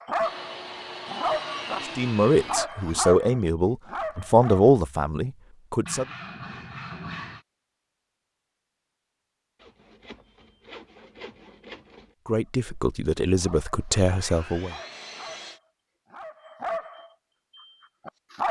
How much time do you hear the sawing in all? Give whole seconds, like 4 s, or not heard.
8 s.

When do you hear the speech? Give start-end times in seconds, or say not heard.
1.9-6.0, 12.2-14.8.